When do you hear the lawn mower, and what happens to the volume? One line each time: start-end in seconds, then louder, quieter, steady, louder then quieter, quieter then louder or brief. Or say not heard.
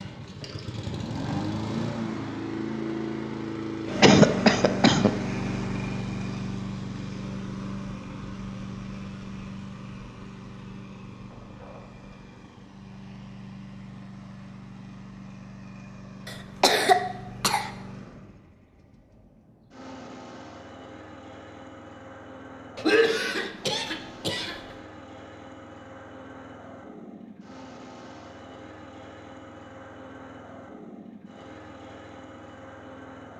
0.0-33.3 quieter.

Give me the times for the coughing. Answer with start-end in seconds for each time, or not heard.
4.0-5.1, 16.6-17.7, 22.8-24.6.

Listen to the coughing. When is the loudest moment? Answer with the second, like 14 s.
4 s.